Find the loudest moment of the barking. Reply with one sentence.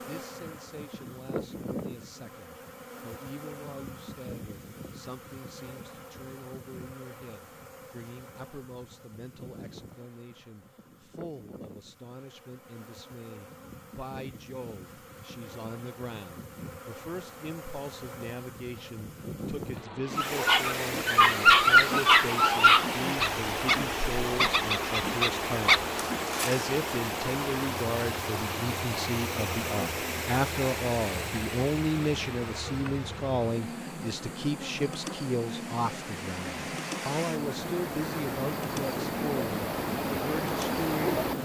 The loudest moment of the barking is at 22 seconds.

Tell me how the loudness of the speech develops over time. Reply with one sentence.
The loudness of the speech goes up.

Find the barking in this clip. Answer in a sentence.
You can hear the barking from 20.1 to 26.8 s.